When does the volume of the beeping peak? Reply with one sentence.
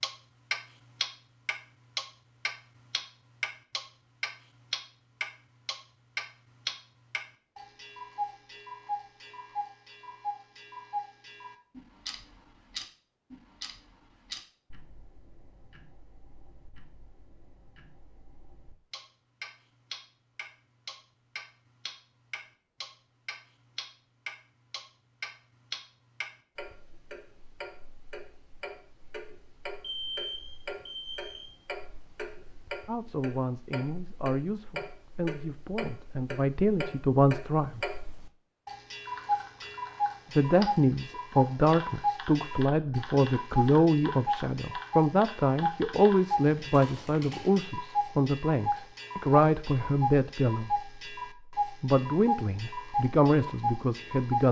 The volume of the beeping peaks at 30 seconds.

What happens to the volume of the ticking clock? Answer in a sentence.
The volume of the ticking clock goes down, then up.